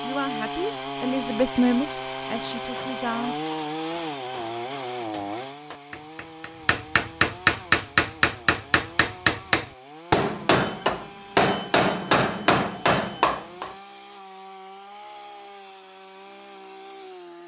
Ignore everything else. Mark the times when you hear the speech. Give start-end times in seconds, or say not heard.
0.0-3.4.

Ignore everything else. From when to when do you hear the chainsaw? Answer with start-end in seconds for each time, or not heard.
0.0-17.4.